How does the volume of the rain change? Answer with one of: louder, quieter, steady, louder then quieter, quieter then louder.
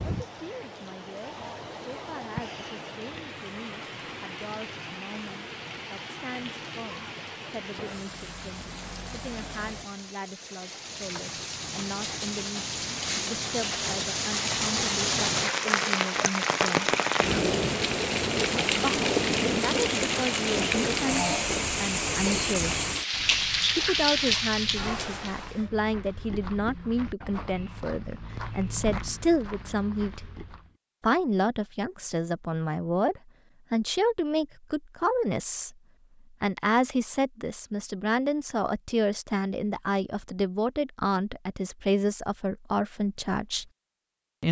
louder.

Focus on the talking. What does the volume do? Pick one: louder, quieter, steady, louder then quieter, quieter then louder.
louder.